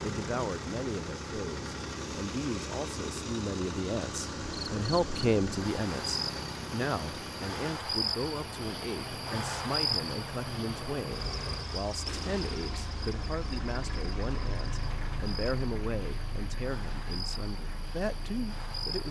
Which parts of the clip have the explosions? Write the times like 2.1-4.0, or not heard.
12.1-12.9.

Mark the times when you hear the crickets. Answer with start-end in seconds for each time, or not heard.
4.4-19.0.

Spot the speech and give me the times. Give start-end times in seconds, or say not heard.
0.0-19.0.